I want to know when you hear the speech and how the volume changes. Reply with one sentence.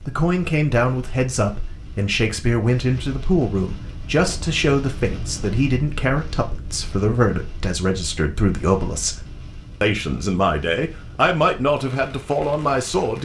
You can hear the speech from 0.1 to 13.2 s, at a steady volume.